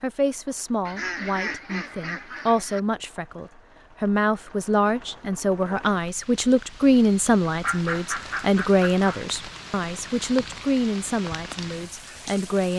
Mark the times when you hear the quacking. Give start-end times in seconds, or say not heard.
0.8-2.8, 7.6-9.2.